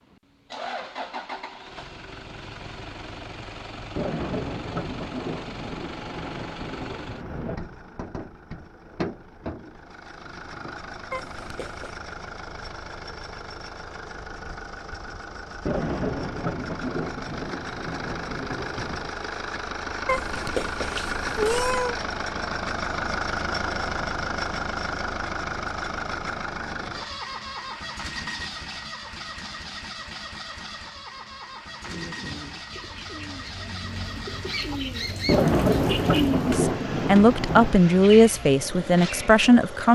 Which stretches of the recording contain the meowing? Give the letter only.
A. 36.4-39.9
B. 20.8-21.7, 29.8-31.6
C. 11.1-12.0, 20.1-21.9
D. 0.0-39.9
C.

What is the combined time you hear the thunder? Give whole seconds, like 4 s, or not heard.
10 s.